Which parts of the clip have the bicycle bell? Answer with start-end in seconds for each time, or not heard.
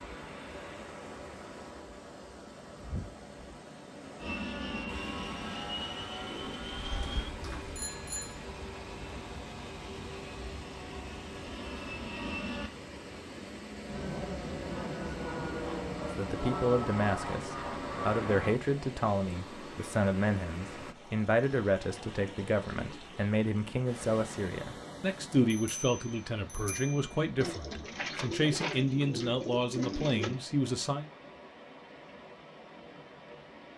7.8-8.4, 25.5-27.1.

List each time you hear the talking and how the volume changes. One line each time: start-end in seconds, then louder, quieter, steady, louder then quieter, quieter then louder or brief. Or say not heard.
16.0-31.1 steady.